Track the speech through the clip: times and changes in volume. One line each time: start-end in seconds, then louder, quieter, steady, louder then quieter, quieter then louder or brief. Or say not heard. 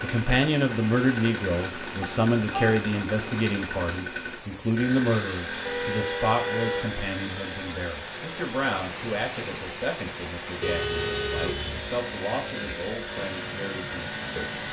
0.0-14.4 quieter.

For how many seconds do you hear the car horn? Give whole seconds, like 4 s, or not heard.
3 s.